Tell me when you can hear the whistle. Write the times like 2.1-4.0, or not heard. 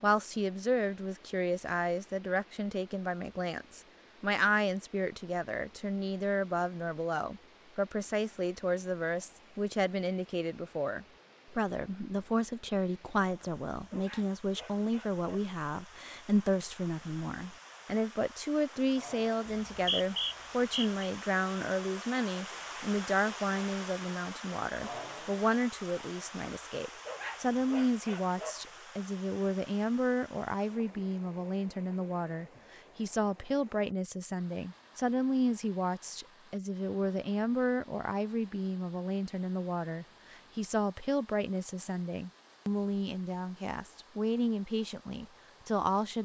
19.4-20.9.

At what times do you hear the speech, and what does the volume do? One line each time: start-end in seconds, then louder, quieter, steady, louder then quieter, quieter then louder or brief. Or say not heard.
0.0-46.2 steady.